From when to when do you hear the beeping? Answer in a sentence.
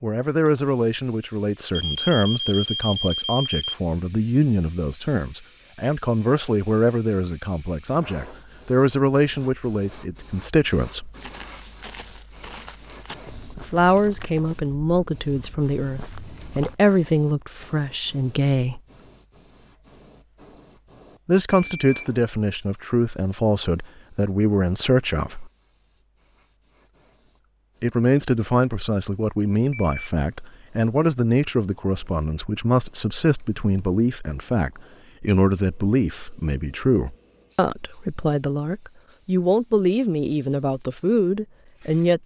You can hear the beeping from 1.8 to 3.7 s, from 21.5 to 22.1 s and from 29.7 to 30.1 s.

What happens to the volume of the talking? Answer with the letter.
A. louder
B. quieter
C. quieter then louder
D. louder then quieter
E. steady
E.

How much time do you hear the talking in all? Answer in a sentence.
The talking can be heard for 35 seconds in total.